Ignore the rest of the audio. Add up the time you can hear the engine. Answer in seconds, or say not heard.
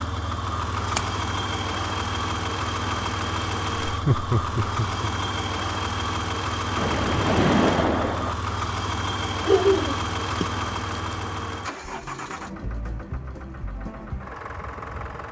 15 s.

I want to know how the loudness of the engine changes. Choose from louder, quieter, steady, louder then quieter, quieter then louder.
quieter.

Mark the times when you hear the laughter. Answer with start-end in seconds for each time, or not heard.
3.9-5.0, 9.4-10.0.